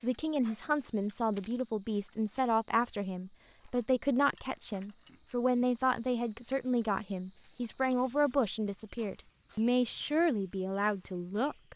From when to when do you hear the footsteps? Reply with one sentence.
You can't hear the footsteps here.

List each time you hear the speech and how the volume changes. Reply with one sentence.
The speech can be heard from 0.0 to 11.7 s, at a steady volume.